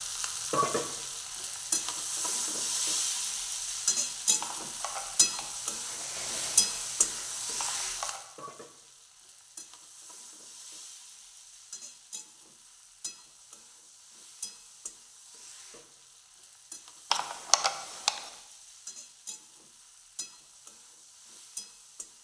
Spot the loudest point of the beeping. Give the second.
18 s.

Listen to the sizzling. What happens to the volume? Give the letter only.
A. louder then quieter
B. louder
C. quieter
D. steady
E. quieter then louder
C.